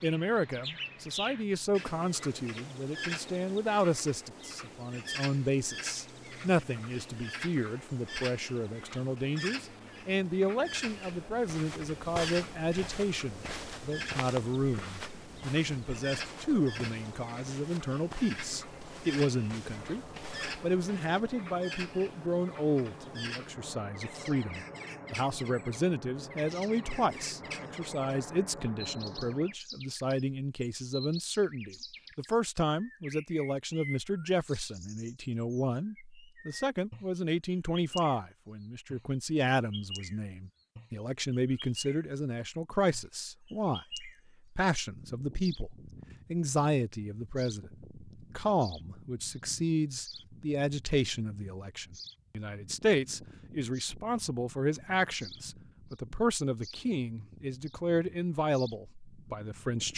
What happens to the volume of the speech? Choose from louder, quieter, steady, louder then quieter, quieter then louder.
steady.